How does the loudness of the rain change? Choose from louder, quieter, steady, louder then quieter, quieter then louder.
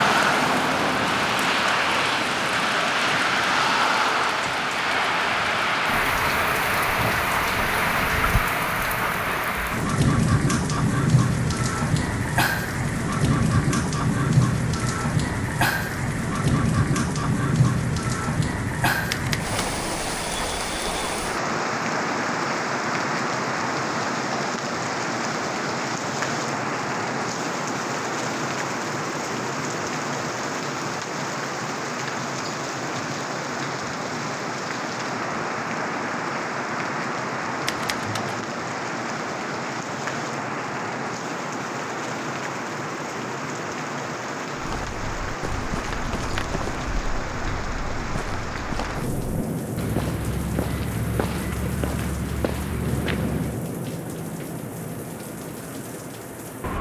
quieter.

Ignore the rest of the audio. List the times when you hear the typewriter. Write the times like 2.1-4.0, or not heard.
19.1-19.9, 37.6-38.5.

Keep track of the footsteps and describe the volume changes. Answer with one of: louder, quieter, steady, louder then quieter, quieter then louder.
louder.